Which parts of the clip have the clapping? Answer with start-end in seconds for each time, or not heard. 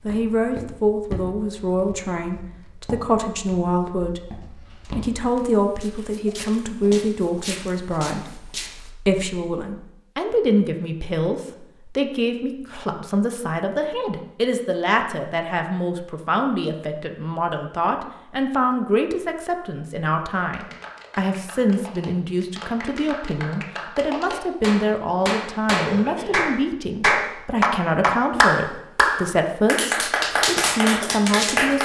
20.4-31.8.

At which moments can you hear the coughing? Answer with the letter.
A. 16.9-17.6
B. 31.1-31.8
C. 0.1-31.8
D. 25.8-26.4
D.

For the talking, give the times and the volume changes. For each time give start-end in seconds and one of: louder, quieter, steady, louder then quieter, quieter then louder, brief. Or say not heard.
0.1-31.8 steady.